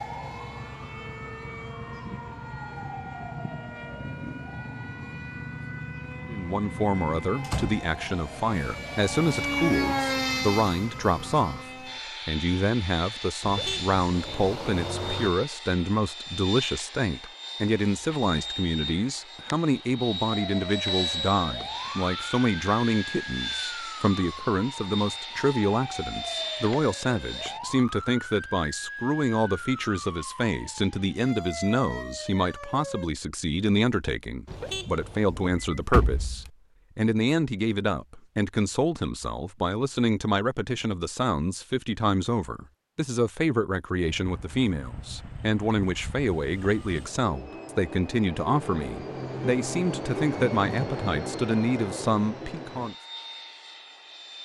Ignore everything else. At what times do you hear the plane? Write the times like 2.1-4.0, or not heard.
0.0-27.6, 44.0-54.3.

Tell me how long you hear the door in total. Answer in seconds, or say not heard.
2 s.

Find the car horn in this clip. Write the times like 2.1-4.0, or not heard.
13.4-15.3, 34.5-35.4.